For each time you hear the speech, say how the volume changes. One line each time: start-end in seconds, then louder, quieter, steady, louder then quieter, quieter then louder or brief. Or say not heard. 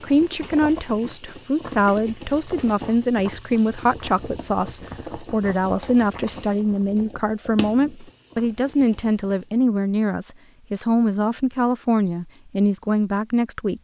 0.0-13.7 steady.